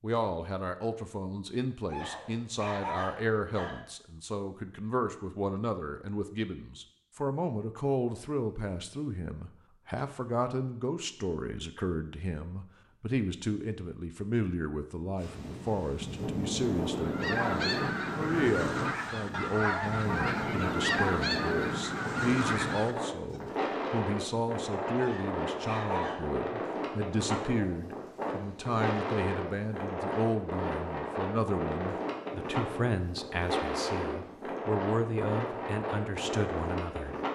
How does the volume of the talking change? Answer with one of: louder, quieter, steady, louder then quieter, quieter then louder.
steady.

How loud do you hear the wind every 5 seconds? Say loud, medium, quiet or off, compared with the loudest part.
off, off, off, loud, loud, loud, loud, loud.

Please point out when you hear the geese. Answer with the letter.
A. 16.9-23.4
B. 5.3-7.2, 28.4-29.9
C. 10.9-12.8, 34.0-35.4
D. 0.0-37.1
A.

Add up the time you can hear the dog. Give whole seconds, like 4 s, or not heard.
3 s.